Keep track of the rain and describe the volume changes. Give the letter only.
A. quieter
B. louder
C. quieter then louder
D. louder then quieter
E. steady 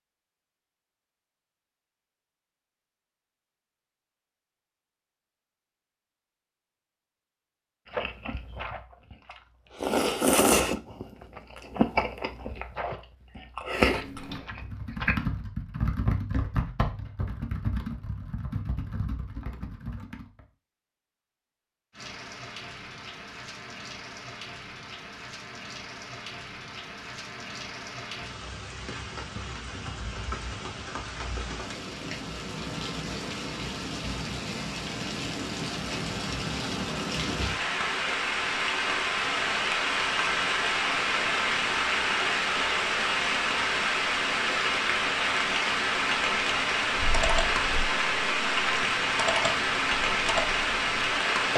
B.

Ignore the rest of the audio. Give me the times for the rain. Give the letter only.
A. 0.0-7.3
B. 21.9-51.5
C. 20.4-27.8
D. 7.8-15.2
B.